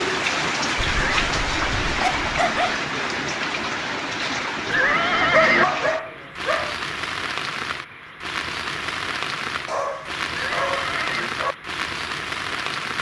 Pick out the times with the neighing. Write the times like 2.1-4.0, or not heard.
0.8-1.4, 4.7-5.7, 10.3-11.3.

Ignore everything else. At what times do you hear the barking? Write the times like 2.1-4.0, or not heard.
0.8-2.8, 5.2-6.8, 9.7-11.6.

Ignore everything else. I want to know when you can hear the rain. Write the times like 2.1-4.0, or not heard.
0.0-12.9.